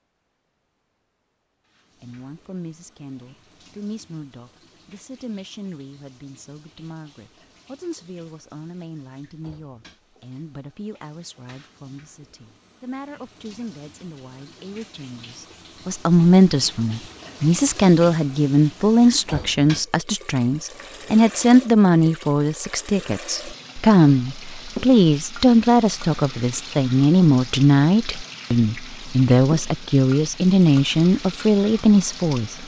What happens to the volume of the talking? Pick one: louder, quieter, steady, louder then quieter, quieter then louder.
louder.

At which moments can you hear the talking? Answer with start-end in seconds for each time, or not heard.
2.0-32.6.